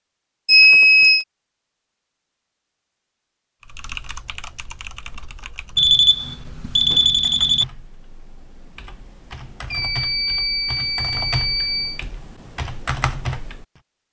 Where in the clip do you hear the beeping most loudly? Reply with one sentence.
The volume of the beeping peaks at 1 second.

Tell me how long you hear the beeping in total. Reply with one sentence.
You can hear the beeping for 5 seconds altogether.